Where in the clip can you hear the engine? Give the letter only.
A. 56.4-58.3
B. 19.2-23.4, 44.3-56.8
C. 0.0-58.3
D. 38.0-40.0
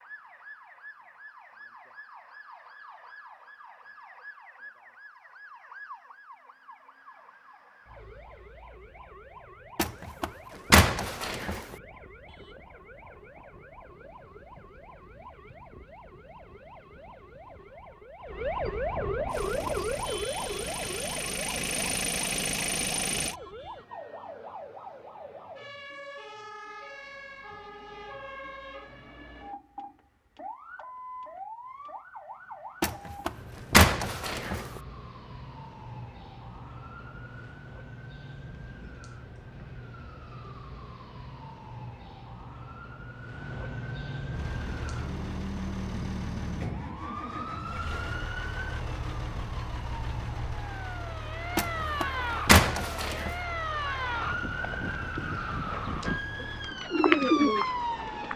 B.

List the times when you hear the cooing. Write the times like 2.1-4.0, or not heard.
56.4-58.3.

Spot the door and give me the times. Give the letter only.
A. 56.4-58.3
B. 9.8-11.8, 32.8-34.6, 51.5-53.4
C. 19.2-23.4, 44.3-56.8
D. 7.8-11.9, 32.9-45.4
B.